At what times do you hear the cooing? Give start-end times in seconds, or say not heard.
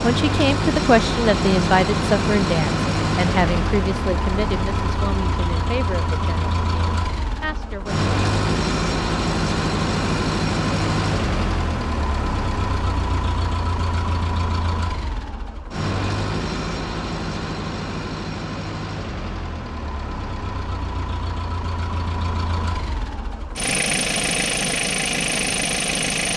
not heard.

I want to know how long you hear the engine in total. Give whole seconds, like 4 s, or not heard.
26 s.